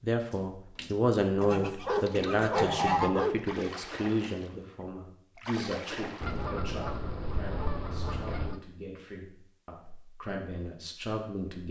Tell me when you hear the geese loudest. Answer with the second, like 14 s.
3 s.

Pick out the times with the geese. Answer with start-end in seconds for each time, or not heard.
1.4-3.1, 6.2-8.6.